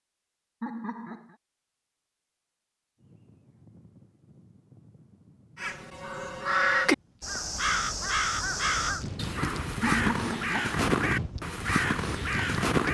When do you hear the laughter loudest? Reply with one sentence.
The loudest moment of the laughter is at 10 seconds.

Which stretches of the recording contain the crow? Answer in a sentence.
The crow can be heard from 5.5 to 12.8 s.